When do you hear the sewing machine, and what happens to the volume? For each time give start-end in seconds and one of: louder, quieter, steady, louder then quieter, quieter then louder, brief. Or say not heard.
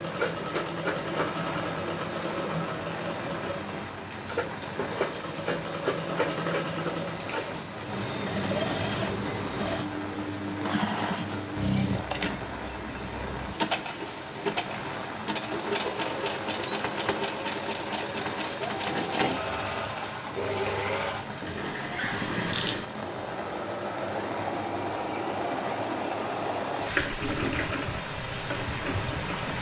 0.0-29.5 steady.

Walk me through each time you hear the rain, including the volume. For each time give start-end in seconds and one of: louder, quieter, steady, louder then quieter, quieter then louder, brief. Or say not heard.
0.0-29.5 steady.